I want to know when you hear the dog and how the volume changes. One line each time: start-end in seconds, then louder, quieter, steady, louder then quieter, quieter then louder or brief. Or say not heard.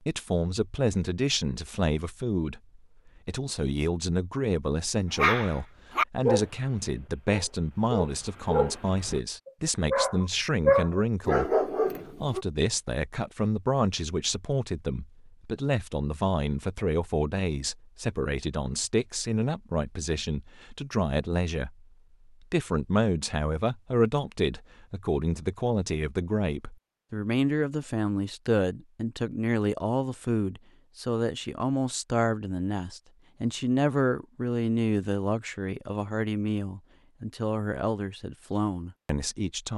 5.2-12.4 quieter then louder.